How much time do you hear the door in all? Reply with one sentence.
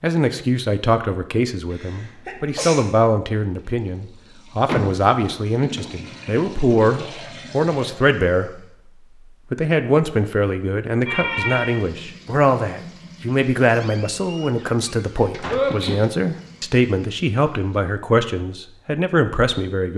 The door can be heard for 3 seconds in total.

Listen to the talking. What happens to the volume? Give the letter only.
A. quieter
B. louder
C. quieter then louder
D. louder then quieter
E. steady
E.